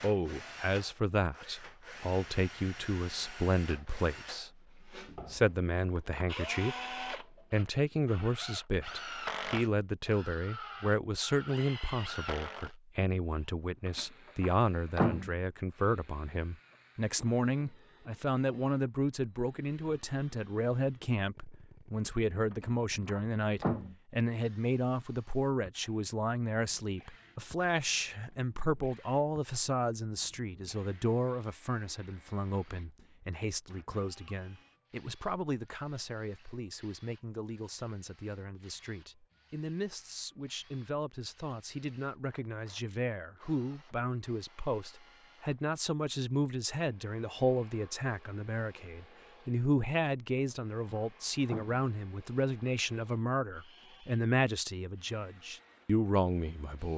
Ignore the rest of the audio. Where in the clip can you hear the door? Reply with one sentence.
You can hear the door from 13.8 to 15.3 s, from 22.5 to 23.9 s and from 50.4 to 51.8 s.